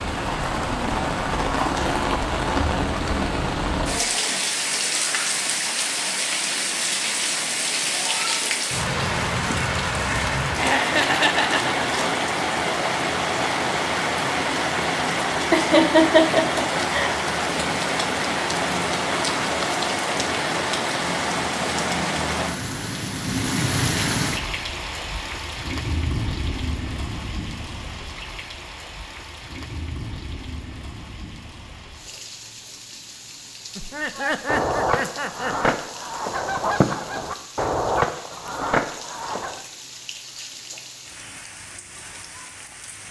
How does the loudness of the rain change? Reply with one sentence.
The loudness of the rain goes down.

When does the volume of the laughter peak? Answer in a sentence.
The volume of the laughter peaks at 16 seconds.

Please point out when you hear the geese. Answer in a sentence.
The geese can be heard from 34.1 to 39.6 s.